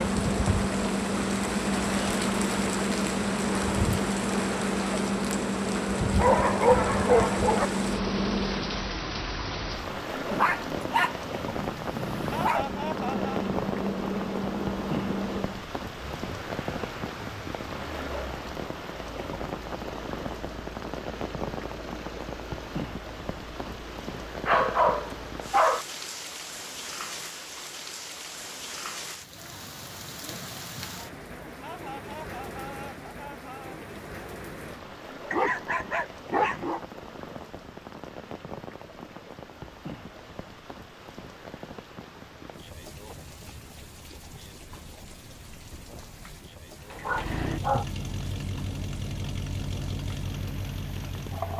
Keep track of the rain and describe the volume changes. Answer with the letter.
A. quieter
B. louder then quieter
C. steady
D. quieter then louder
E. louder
A.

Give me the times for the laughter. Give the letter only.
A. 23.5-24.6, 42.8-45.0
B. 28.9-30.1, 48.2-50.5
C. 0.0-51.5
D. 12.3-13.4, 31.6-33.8
D.